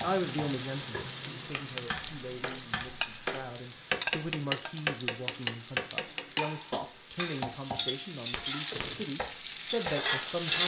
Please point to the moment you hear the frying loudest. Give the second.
10 s.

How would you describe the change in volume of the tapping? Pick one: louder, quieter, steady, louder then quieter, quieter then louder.
louder then quieter.